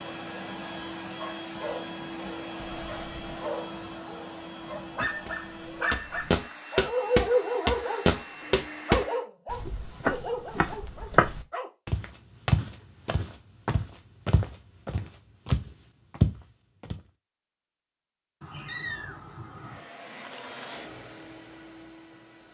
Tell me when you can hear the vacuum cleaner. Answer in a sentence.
The vacuum cleaner can be heard from 0.0 to 9.3 s and from 19.5 to 22.5 s.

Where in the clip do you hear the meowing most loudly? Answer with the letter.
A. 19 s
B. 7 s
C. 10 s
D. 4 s
A.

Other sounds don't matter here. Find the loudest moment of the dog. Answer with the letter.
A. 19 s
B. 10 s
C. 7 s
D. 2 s
C.